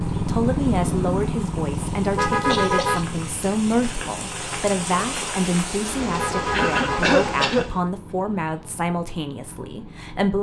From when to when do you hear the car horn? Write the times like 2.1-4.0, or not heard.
2.0-3.1, 6.1-7.0.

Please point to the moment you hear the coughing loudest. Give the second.
7 s.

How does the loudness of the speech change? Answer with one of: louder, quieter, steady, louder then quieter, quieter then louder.
steady.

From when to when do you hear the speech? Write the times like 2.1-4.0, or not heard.
0.1-10.3.